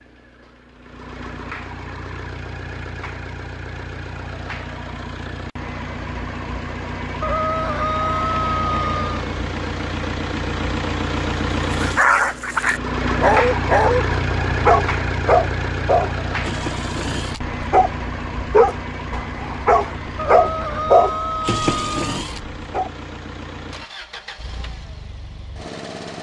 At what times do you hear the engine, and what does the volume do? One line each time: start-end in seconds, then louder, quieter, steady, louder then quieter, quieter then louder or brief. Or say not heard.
0.0-26.1 louder then quieter.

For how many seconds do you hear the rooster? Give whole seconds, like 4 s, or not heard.
4 s.